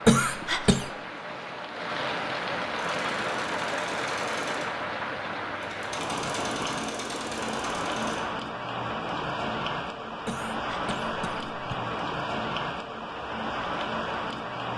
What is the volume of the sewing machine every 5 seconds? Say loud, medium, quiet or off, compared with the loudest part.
loud, loud, off.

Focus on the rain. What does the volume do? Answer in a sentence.
The loudness of the rain stays about the same.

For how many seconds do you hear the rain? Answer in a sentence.
You can hear the rain for 15 seconds altogether.